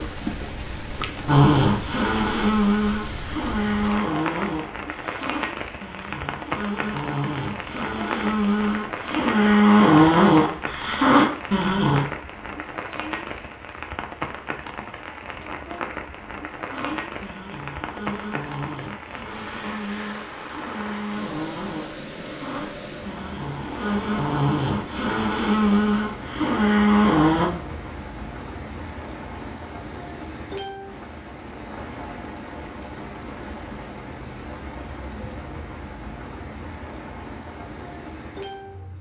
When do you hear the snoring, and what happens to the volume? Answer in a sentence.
The snoring can be heard from 1.2 to 12.1 s, getting quieter then louder; and from 16.7 to 27.5 s, getting louder.